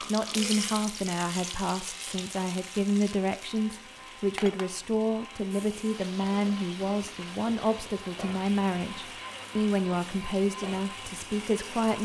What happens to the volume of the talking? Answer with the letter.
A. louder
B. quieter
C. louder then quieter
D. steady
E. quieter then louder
D.